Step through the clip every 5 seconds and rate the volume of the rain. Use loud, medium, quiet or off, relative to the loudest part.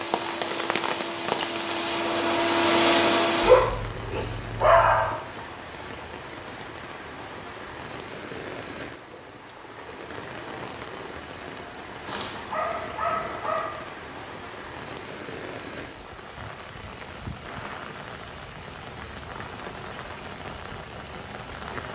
loud, medium, medium, medium, medium.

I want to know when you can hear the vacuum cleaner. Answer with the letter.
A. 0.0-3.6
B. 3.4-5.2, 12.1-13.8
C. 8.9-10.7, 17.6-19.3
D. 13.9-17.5
A.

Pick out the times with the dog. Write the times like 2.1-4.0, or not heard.
3.4-5.2, 12.1-13.8.